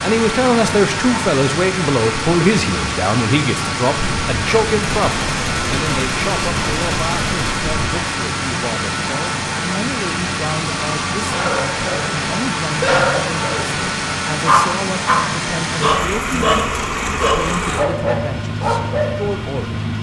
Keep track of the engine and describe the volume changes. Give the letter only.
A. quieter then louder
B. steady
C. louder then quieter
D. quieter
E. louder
B.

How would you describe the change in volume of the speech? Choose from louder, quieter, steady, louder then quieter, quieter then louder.
quieter.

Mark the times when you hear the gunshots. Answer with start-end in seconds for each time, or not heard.
4.0-7.8.